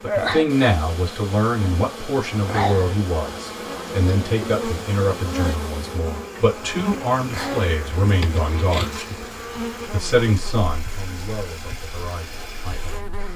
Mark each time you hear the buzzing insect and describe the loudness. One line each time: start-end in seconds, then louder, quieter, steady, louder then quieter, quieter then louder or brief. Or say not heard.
0.0-13.3 quieter.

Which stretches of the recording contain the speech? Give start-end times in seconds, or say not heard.
0.0-9.0, 9.9-13.1.